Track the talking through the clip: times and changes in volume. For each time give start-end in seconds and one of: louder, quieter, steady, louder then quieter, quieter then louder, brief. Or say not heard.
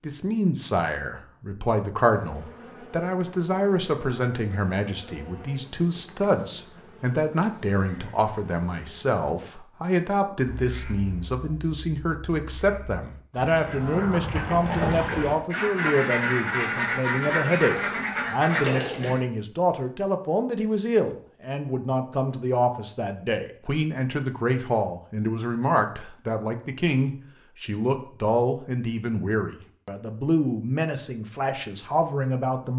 0.0-32.7 steady.